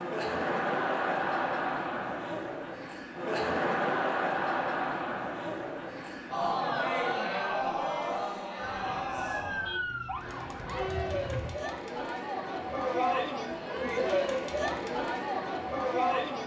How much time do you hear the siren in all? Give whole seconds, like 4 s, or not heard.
3 s.